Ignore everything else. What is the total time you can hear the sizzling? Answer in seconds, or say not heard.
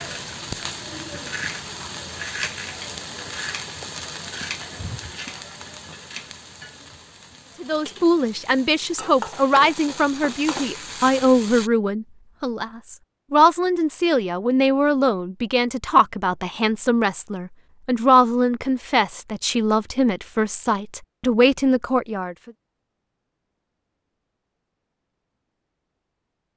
12 s.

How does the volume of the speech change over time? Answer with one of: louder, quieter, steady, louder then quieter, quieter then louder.
steady.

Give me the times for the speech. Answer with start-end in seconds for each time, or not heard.
7.6-22.5.